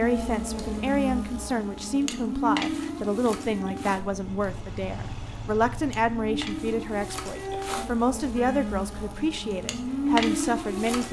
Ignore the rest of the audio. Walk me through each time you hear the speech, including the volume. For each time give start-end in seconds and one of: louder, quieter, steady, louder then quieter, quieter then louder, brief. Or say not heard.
0.0-11.0 steady.